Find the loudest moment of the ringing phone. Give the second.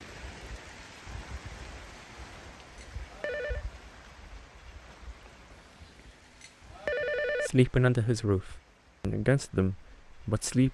7 s.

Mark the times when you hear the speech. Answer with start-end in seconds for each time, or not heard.
7.4-10.6.